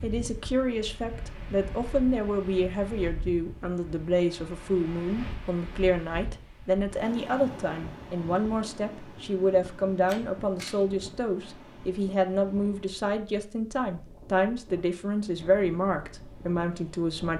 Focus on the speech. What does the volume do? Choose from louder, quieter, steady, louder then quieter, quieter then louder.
steady.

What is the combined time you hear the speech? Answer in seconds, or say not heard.
17 s.